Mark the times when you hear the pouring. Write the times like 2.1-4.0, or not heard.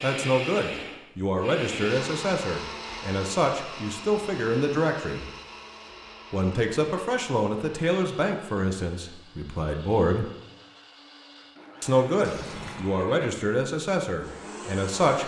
12.2-12.9.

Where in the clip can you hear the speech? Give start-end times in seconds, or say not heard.
0.0-5.2, 6.3-10.2, 11.8-15.2.